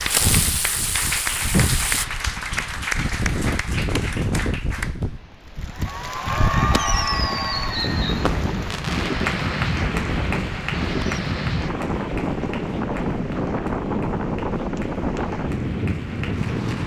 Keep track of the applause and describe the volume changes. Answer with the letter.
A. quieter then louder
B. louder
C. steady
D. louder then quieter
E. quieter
E.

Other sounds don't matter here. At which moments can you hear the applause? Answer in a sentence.
The applause can be heard from 0.0 to 16.8 s.